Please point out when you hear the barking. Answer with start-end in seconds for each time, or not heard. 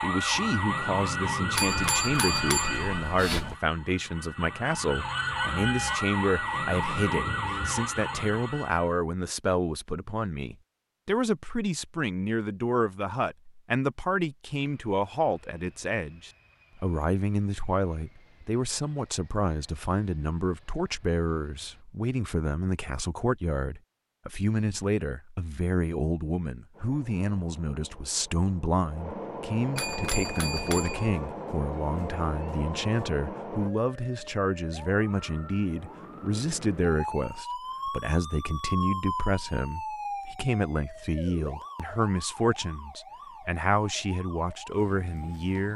not heard.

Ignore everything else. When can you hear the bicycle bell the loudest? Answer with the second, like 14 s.
2 s.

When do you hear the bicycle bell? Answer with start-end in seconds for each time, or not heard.
1.6-3.5, 29.8-31.1.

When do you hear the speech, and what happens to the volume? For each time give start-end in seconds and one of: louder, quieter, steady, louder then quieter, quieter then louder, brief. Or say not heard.
0.0-45.7 steady.